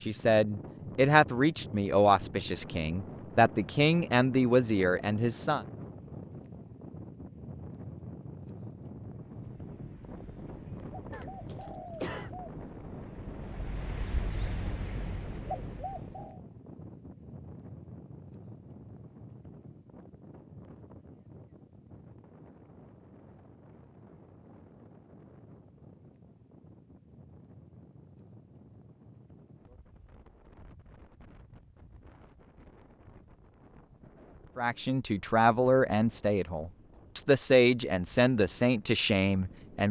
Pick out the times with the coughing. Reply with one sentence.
The coughing can be heard from 11.1 to 12.3 s.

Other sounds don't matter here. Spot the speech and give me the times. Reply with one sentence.
You can hear the speech from 0.0 to 5.7 s and from 34.5 to 39.8 s.